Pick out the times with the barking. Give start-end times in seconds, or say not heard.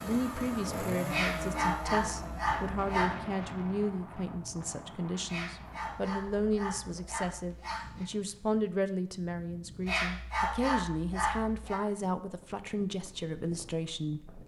1.1-3.1, 5.2-8.1, 9.8-11.8.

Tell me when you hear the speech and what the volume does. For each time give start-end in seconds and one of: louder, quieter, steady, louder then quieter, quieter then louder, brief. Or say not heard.
0.0-14.4 steady.